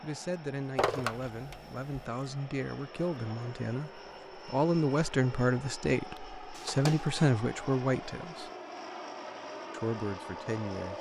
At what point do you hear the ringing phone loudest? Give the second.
1 s.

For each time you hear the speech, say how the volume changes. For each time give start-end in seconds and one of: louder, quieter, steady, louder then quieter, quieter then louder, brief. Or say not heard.
0.0-8.5 louder
9.7-10.9 brief.